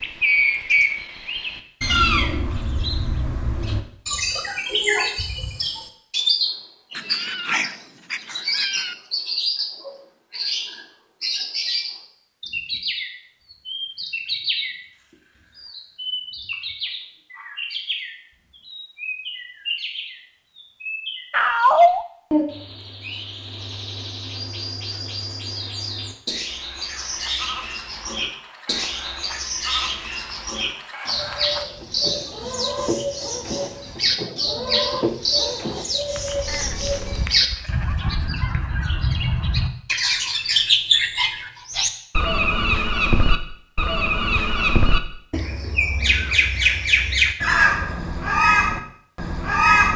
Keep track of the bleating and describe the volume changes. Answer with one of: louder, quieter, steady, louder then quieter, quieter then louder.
louder then quieter.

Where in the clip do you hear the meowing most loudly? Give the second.
22 s.